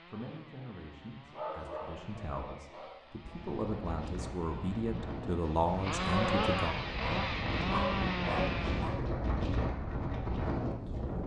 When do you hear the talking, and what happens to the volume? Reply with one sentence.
The talking can be heard from 0.1 to 6.8 s, getting louder.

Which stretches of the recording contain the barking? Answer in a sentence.
You can hear the barking from 1.3 to 3.4 s and from 6.0 to 8.9 s.